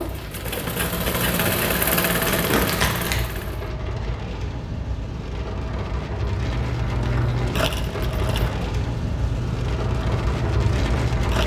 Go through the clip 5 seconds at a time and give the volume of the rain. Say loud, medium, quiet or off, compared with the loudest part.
medium, loud, loud.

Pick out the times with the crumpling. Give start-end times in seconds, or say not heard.
2.2-3.2.